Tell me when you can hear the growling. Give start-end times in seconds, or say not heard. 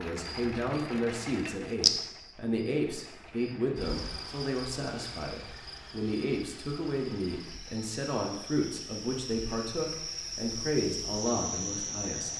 not heard.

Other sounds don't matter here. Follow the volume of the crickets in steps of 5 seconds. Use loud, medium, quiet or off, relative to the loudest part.
loud, medium, loud.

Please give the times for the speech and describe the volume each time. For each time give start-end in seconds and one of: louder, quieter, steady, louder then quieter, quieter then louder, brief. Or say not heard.
0.0-12.3 steady.